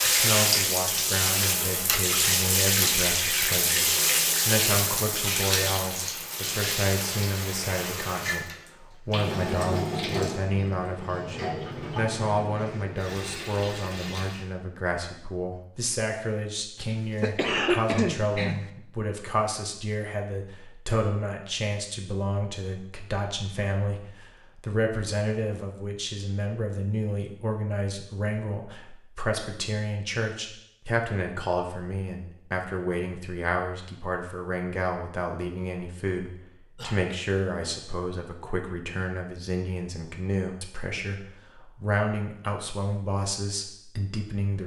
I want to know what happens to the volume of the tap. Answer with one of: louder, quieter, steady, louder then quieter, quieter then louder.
quieter.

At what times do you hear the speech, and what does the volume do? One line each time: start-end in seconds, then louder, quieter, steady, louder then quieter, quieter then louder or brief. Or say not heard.
0.1-44.6 steady.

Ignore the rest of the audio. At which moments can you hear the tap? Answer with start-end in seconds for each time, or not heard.
0.0-14.4.